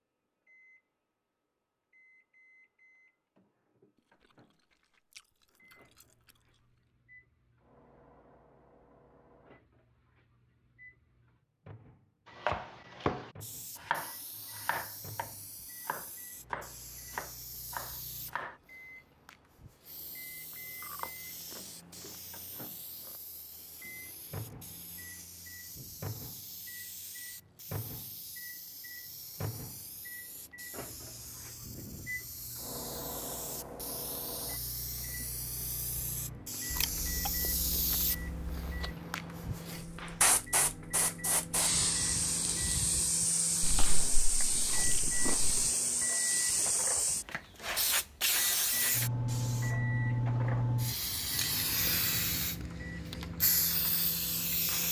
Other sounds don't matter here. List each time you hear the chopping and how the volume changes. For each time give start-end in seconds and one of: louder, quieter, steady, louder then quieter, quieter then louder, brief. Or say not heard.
12.2-18.6 quieter then louder.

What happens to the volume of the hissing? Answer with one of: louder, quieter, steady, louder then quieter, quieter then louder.
louder.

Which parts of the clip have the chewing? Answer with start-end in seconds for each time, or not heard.
5.1-6.3, 20.8-21.6, 36.7-38.9, 43.6-45.6.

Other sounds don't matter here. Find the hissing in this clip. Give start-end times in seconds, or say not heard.
13.4-54.8.